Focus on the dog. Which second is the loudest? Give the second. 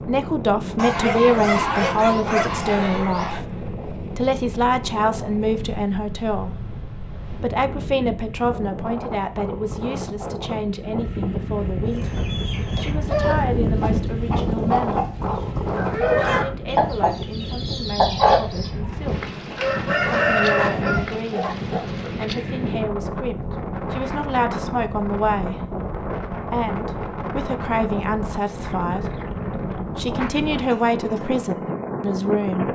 2 s.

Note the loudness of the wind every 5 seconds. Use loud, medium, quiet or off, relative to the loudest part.
medium, medium, loud, loud, loud, loud, loud.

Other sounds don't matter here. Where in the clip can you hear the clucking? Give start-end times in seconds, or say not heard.
11.9-21.1.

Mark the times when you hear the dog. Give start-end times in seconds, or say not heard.
0.8-3.4, 19.9-21.9.